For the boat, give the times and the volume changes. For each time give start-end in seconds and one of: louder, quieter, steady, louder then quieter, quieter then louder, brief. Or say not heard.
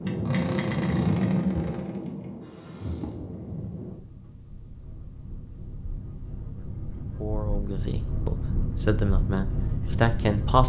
0.0-10.6 quieter then louder.